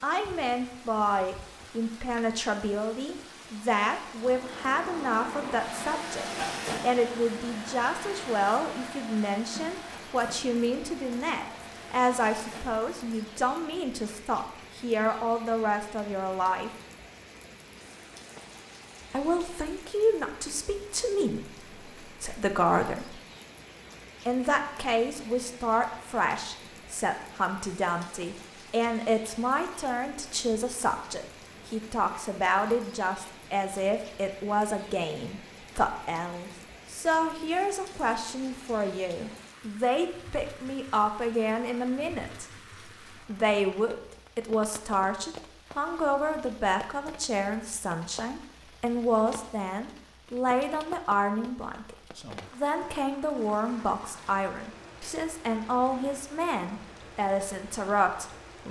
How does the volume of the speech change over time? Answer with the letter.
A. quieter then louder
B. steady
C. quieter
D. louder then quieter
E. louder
B.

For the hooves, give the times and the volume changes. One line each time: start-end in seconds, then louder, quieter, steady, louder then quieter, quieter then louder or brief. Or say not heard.
not heard.